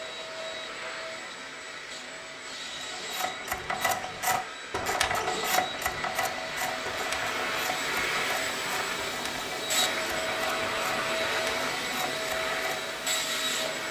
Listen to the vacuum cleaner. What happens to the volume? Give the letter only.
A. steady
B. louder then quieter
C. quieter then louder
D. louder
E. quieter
D.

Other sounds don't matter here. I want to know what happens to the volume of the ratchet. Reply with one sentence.
The volume of the ratchet goes down.